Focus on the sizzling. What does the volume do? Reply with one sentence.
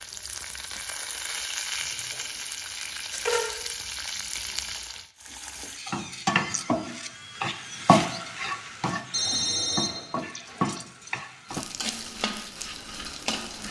The loudness of the sizzling goes up, then down.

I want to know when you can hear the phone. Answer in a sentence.
You can hear the phone from 2.1 to 3.5 s and from 9.1 to 10.1 s.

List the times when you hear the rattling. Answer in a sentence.
You can hear the rattling from 3.1 to 3.7 s.